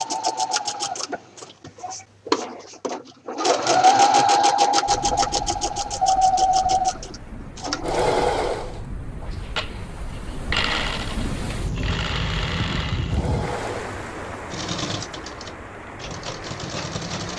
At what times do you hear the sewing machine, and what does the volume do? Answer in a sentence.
You can hear the sewing machine from 0.0 to 17.3 s, getting louder then quieter.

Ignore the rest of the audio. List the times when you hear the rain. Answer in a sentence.
The rain can be heard from 4.8 to 17.3 s.